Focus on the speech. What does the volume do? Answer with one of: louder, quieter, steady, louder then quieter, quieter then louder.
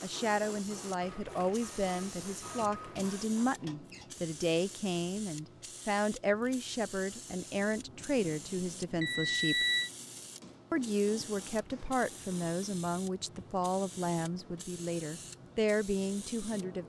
steady.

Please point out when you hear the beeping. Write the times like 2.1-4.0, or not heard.
1.0-3.0, 9.0-9.9.